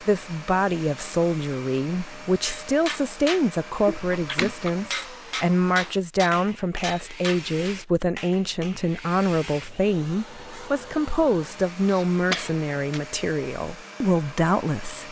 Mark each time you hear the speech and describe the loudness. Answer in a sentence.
You can hear the speech from 0.1 to 15.0 s, at a steady volume.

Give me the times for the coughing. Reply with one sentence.
The coughing can be heard from 3.9 to 4.7 s and from 11.8 to 13.1 s.